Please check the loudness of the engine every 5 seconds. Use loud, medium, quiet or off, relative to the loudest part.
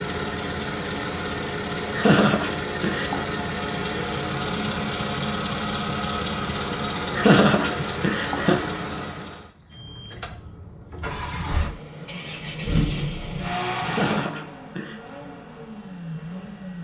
loud, loud, loud, medium.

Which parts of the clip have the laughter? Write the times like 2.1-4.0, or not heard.
1.9-3.2, 7.2-8.6, 13.8-14.9.